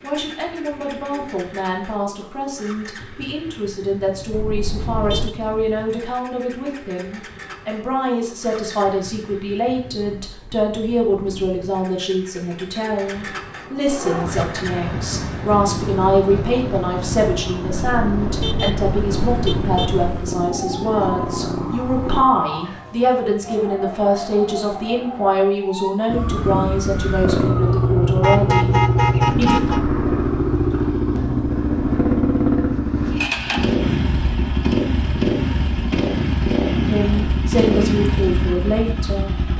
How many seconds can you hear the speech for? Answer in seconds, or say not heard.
32 s.